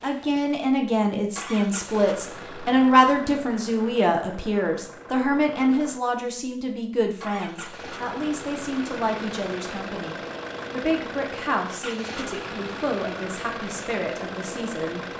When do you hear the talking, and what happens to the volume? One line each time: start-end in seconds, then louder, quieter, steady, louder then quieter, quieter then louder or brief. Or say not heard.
0.0-15.1 quieter.